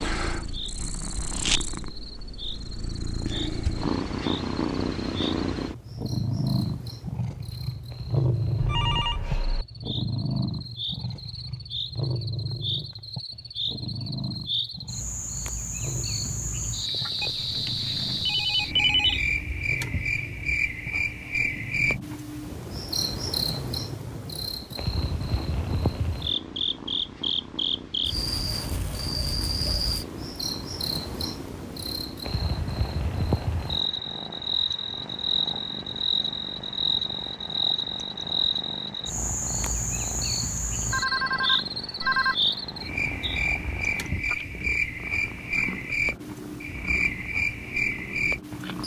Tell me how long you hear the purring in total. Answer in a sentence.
The purring can be heard for 49 seconds in total.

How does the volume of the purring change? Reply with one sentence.
The volume of the purring goes down.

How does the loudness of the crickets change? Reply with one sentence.
The loudness of the crickets goes up.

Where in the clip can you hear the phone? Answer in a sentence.
The phone can be heard from 8.6 to 9.7 s, from 17.2 to 19.2 s and from 40.9 to 42.4 s.